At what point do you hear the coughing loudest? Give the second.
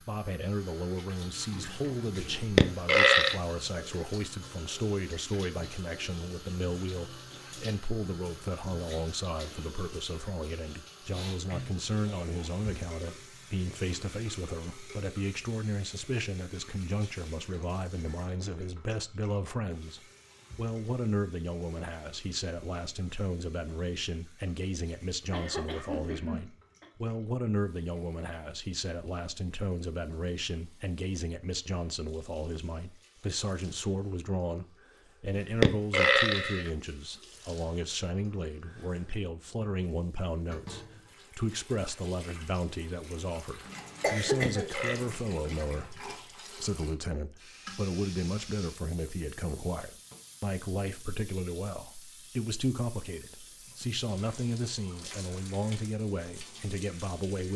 44 s.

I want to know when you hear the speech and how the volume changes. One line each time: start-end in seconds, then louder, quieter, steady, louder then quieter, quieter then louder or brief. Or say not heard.
0.0-57.5 steady.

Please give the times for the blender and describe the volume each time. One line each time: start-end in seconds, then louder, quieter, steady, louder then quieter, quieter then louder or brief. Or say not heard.
not heard.